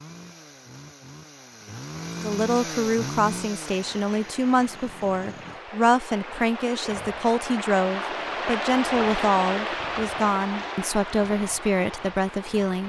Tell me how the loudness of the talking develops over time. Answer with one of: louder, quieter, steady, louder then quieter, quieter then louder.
steady.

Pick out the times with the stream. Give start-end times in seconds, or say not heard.
3.5-12.8.